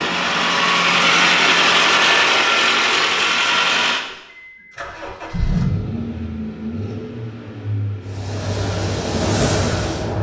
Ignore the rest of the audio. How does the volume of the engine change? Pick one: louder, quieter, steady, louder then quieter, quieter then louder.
quieter.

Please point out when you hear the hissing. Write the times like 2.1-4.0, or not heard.
8.0-10.1.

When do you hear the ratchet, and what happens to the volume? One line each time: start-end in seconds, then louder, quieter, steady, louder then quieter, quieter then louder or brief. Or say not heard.
not heard.